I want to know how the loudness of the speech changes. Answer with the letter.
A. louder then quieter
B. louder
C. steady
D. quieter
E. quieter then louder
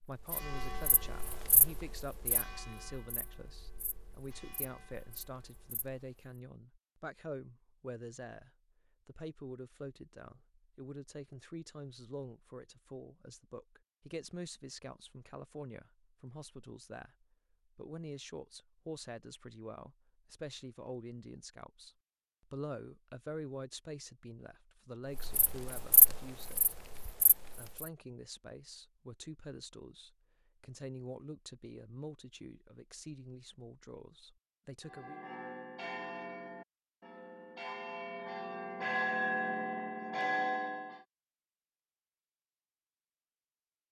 C.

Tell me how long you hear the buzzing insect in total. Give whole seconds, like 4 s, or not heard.
9 s.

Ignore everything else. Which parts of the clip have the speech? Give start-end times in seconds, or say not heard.
0.0-26.8, 27.6-35.2.